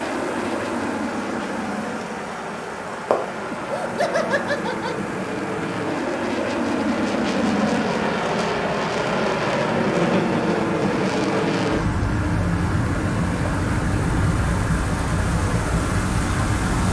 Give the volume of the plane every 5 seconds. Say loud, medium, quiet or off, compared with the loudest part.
medium, loud, loud, loud.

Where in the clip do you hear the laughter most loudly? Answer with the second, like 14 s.
4 s.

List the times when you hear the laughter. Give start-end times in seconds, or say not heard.
3.5-5.0, 9.9-10.4.